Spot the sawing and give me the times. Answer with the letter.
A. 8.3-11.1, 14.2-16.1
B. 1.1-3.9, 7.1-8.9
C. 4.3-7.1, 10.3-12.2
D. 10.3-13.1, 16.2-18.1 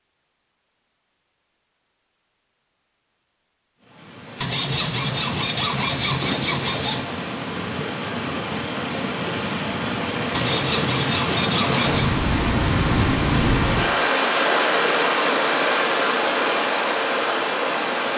C.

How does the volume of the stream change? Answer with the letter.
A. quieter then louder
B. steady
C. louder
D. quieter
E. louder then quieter
C.